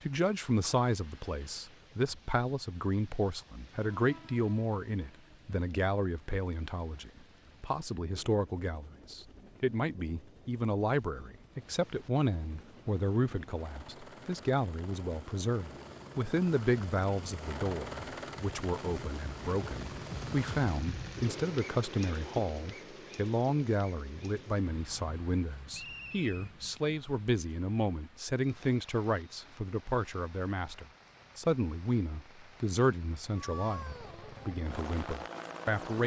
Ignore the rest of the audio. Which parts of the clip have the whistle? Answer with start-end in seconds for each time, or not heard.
25.7-26.5.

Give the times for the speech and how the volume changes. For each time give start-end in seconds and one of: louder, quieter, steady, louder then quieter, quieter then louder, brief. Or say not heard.
0.0-36.0 steady.